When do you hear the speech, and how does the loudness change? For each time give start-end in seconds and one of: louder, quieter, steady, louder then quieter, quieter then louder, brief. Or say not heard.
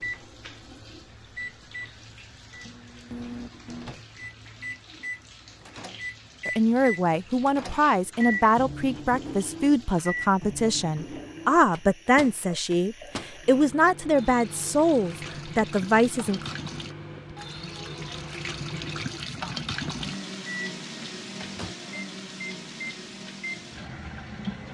6.5-16.6 steady.